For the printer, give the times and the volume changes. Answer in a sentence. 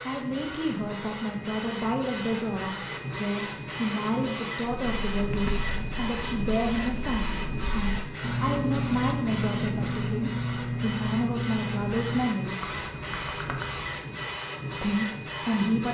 You can hear the printer from 0.0 to 15.8 s, at a steady volume.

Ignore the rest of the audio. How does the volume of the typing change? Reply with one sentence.
The loudness of the typing goes up, then down.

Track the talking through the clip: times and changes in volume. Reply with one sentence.
The talking can be heard from 0.0 to 12.6 s, at a steady volume; and briefly from 14.8 to 15.8 s.